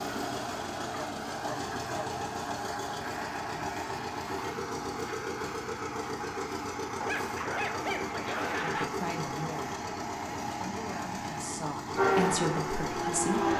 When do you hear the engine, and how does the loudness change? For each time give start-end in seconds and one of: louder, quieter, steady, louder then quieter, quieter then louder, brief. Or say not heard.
0.0-13.5 steady.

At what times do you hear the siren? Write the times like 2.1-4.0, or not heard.
11.9-13.5.